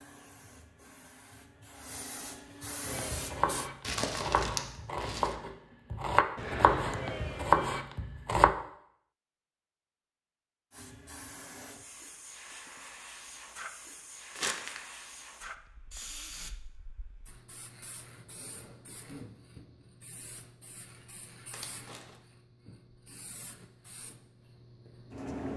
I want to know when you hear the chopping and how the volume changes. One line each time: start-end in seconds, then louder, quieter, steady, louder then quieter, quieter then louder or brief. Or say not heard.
2.9-8.5 louder.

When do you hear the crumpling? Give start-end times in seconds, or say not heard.
3.8-5.3, 14.3-14.8, 21.5-22.2.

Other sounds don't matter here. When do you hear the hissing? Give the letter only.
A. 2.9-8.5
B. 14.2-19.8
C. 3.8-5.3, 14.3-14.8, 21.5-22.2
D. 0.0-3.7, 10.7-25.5
D.